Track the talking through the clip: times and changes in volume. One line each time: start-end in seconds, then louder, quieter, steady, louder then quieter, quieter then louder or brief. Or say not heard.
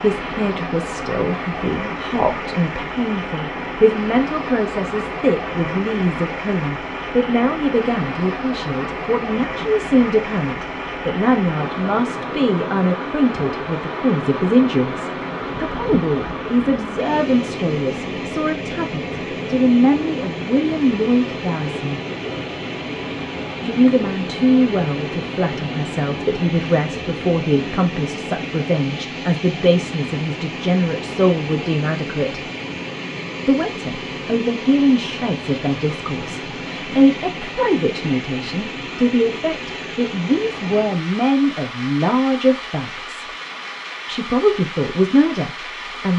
0.0-22.0 steady
23.6-32.4 steady
33.5-43.2 steady
44.0-46.1 brief.